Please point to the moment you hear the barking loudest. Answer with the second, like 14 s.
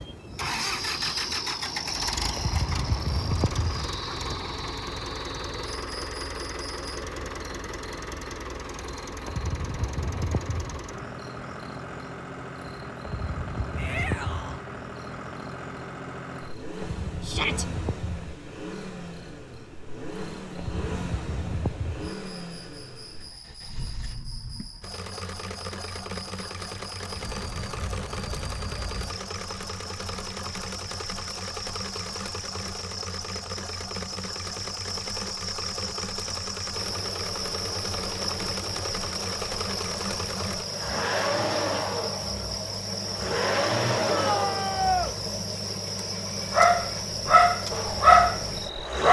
48 s.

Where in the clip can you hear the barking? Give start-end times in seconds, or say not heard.
46.5-49.0.